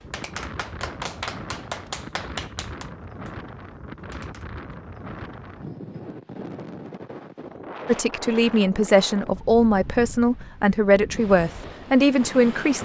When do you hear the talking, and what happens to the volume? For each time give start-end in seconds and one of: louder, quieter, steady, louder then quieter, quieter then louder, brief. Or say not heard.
7.8-12.8 steady.